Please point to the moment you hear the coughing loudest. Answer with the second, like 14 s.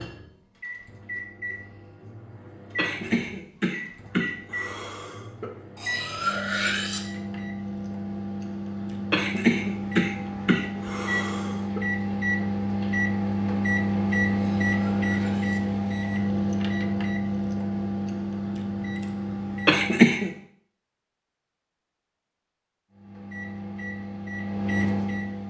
20 s.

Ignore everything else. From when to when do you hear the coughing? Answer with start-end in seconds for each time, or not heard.
2.8-5.5, 9.1-11.8, 19.6-20.3.